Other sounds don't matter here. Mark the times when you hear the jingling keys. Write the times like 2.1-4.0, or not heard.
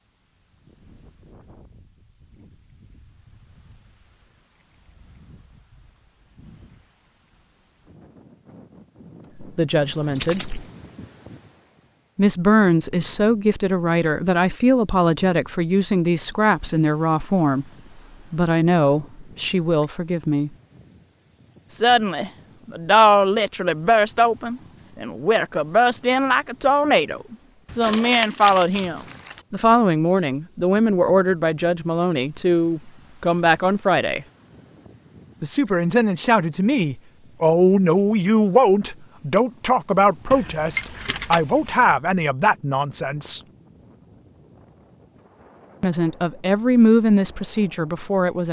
10.2-10.7, 27.6-29.4, 40.3-41.9.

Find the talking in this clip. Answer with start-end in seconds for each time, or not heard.
9.4-10.5, 12.2-17.6, 18.3-20.5, 21.7-34.2, 35.4-43.4, 45.8-48.4.